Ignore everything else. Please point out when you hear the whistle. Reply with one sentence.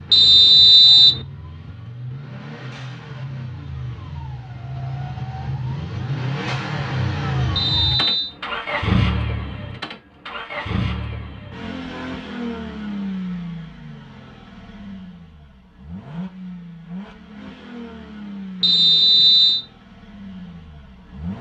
You can hear the whistle from 0.1 to 1.2 s, from 7.5 to 8.3 s and from 18.6 to 19.6 s.